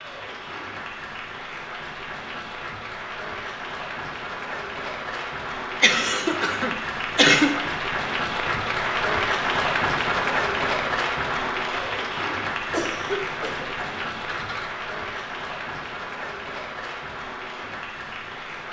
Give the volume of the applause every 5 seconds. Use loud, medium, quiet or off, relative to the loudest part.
medium, loud, loud, medium.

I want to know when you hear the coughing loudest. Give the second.
7 s.